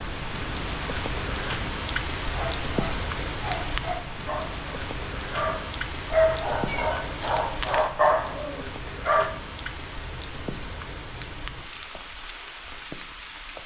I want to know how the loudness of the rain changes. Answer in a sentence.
The loudness of the rain goes down.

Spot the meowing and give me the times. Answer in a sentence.
The meowing can be heard from 6.7 to 7.9 s.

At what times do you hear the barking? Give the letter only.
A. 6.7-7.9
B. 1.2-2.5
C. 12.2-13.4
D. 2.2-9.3
D.